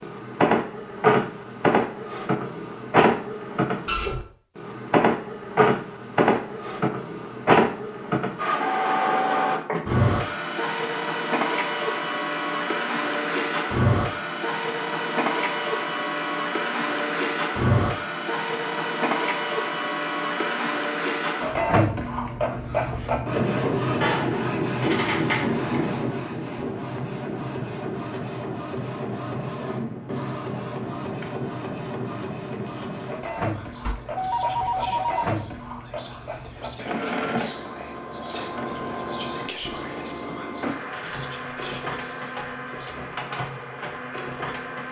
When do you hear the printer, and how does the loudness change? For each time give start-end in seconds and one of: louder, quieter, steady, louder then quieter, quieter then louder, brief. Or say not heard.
0.0-44.8 quieter.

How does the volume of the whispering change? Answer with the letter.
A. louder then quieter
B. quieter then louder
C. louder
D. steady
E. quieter
A.